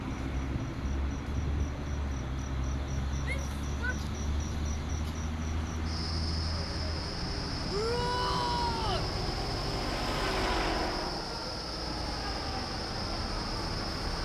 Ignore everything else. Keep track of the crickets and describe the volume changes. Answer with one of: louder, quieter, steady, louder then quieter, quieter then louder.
steady.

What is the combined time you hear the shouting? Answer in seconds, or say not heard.
2 s.